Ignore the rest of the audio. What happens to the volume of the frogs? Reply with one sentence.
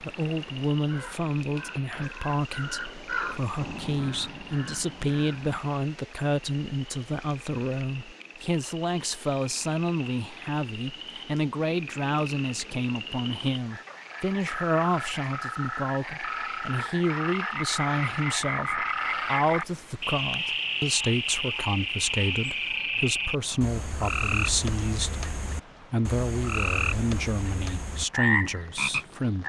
The volume of the frogs goes up.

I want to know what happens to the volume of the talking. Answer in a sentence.
The loudness of the talking stays about the same.